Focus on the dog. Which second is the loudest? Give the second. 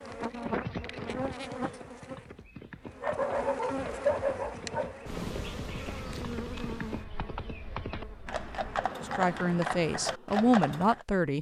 4 s.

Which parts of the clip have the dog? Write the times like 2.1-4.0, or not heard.
3.0-5.0.